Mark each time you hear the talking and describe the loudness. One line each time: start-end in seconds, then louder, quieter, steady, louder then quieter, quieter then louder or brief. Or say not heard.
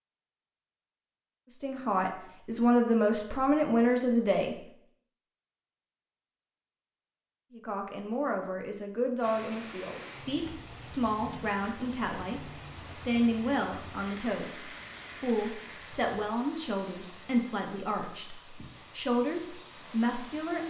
1.6-4.5 brief
7.5-20.6 steady.